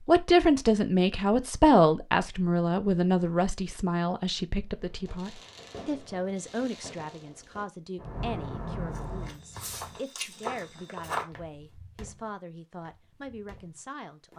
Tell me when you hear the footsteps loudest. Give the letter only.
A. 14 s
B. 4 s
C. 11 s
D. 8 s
C.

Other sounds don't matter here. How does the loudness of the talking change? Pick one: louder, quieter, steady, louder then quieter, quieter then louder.
quieter.